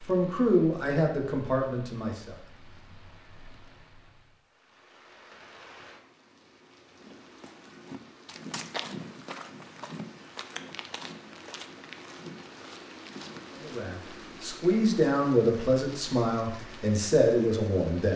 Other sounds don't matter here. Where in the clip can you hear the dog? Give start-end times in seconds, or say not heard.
not heard.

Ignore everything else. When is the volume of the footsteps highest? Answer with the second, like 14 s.
9 s.